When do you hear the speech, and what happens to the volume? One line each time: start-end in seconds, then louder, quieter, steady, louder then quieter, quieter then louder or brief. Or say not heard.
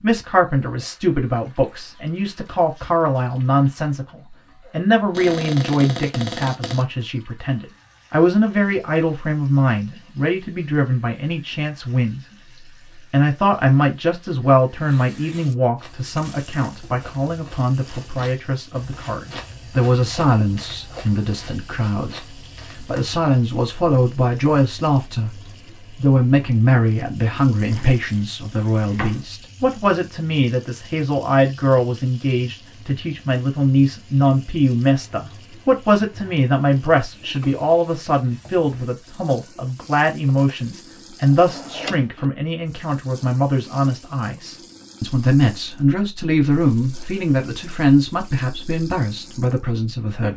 0.0-12.2 steady
12.9-50.3 steady.